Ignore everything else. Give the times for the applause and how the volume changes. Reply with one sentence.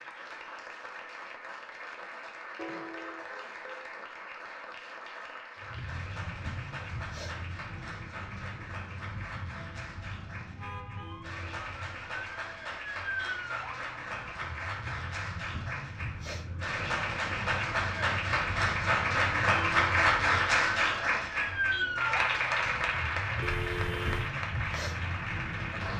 You can hear the applause from 0.0 to 25.9 s, getting louder.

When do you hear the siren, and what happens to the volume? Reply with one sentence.
You can hear the siren from 5.6 to 25.9 s, getting louder.